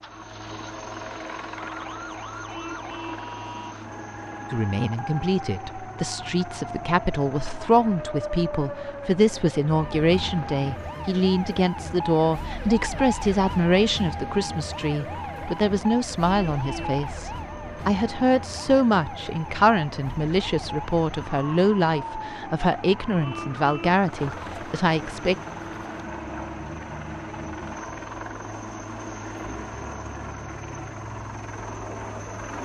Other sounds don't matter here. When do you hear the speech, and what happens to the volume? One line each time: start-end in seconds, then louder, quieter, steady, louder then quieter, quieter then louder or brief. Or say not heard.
4.5-25.4 steady.